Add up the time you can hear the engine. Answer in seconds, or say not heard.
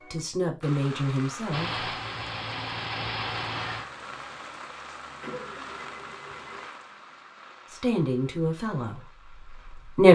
5 s.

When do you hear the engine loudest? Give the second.
3 s.